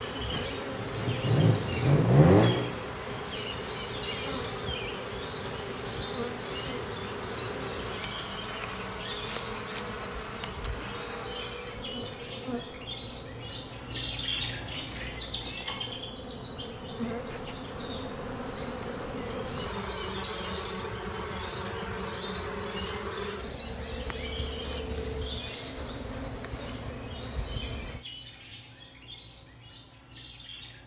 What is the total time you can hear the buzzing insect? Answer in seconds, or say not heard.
28 s.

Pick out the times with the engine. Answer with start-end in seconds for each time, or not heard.
0.1-2.7.